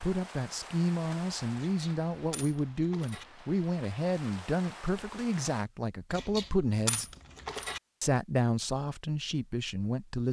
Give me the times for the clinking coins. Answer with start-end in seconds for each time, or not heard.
1.6-3.2, 6.1-7.8.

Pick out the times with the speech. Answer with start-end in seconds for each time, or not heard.
0.0-7.0, 8.0-10.2.